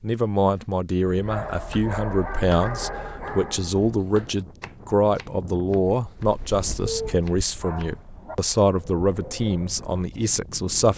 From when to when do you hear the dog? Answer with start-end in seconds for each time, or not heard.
1.1-4.0, 6.8-8.3.